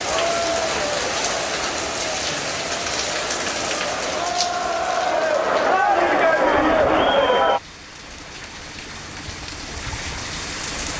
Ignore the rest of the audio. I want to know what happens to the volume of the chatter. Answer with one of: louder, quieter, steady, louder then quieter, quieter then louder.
quieter then louder.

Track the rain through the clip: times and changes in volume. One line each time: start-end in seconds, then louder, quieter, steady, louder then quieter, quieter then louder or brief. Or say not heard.
0.0-10.9 quieter then louder.